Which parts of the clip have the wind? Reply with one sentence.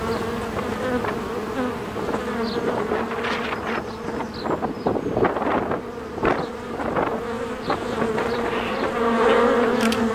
The wind can be heard from 0.0 to 9.8 s.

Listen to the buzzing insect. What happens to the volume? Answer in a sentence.
The volume of the buzzing insect goes down, then up.